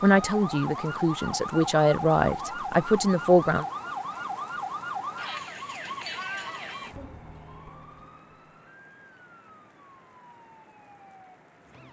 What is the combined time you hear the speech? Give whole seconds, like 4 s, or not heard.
4 s.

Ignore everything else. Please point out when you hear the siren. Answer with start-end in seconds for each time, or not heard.
0.0-11.8.